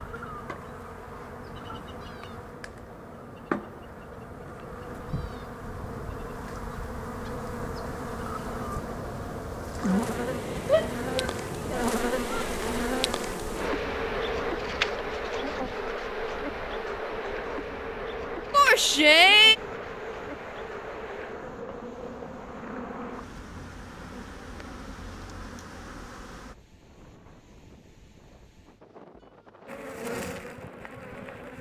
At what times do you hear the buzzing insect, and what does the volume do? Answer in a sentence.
The buzzing insect can be heard from 0.0 to 26.6 s, getting louder then quieter; and briefly from 29.6 to 31.5 s.